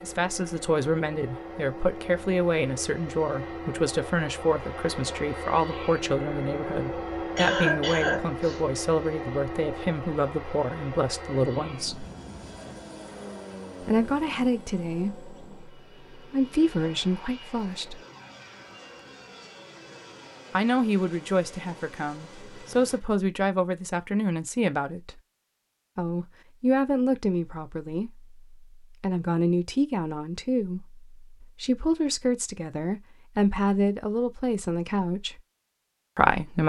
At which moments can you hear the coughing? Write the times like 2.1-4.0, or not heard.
7.3-8.6.